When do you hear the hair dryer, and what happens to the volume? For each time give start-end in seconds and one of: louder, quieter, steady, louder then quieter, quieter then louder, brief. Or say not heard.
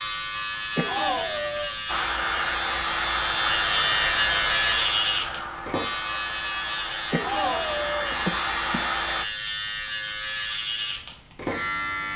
1.9-9.2 quieter then louder.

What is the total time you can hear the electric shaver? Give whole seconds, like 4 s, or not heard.
12 s.